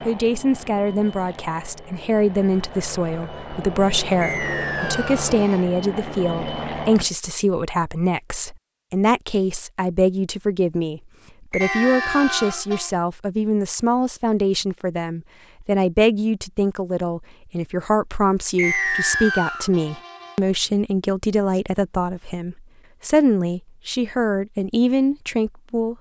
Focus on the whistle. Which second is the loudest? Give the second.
19 s.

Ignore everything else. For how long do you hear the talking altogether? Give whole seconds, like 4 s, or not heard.
26 s.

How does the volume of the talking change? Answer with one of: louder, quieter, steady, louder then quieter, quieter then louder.
steady.